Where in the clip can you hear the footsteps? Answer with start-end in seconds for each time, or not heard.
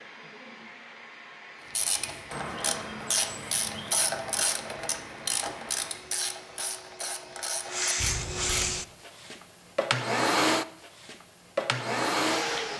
not heard.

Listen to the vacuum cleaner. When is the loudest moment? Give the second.
10 s.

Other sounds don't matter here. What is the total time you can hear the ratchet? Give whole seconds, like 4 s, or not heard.
7 s.